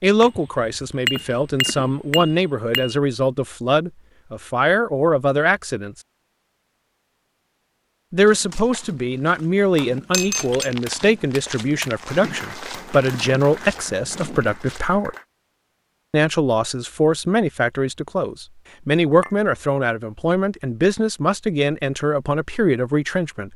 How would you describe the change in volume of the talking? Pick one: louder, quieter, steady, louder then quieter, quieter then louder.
steady.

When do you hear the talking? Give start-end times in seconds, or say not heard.
0.0-6.0, 8.1-15.2, 16.1-23.5.